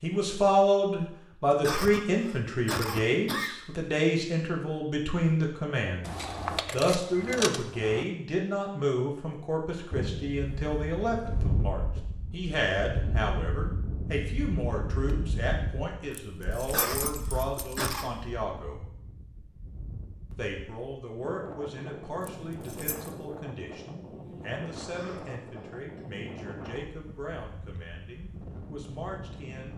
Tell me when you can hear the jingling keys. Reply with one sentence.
The jingling keys can be heard from 6.0 to 8.1 s, from 16.1 to 17.9 s and from 22.2 to 23.1 s.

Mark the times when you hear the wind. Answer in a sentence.
The wind can be heard from 9.9 to 29.7 s.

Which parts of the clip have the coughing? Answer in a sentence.
The coughing can be heard from 1.6 to 3.5 s, from 16.7 to 18.1 s and from 24.9 to 26.0 s.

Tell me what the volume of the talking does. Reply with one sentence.
The volume of the talking goes down.